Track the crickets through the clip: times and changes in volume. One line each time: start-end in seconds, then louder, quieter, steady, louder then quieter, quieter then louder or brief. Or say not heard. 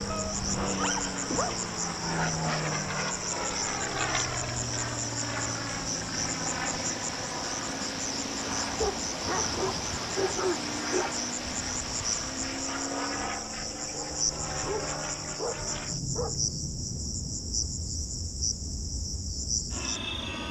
0.0-20.4 steady.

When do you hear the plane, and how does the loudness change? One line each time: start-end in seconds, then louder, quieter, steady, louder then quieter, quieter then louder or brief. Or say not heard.
0.0-20.4 quieter.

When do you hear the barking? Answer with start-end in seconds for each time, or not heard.
0.1-1.6, 8.8-11.2, 13.9-16.4.